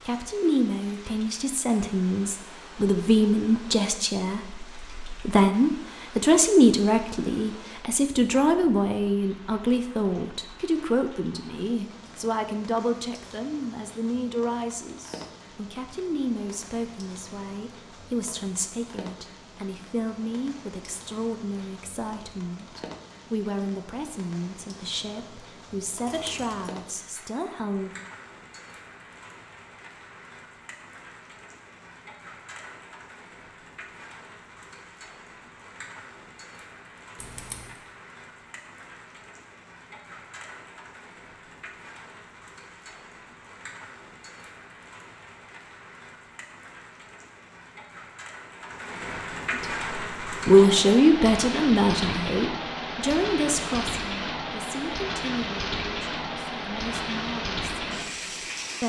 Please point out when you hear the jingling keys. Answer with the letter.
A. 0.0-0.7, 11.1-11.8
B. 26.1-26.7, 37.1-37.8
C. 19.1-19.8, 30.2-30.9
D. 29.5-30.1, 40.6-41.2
B.